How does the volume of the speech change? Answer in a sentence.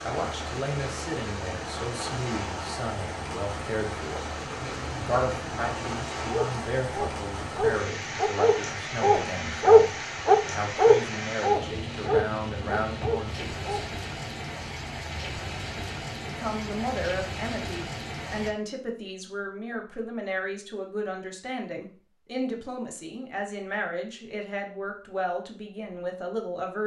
The loudness of the speech stays about the same.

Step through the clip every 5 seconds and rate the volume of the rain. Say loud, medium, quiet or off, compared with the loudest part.
loud, loud, loud, loud, off, off.